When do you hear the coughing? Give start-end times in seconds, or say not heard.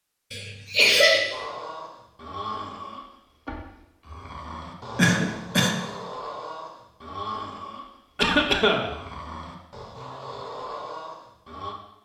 0.3-1.3, 5.0-5.9, 8.2-8.9.